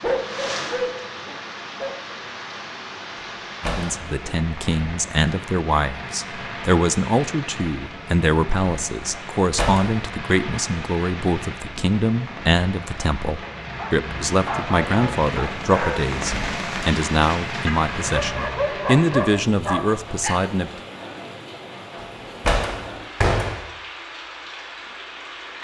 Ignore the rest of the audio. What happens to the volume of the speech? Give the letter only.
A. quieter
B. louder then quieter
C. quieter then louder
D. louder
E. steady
E.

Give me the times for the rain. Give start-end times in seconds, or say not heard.
0.0-25.5.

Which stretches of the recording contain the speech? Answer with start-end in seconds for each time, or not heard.
3.6-20.7.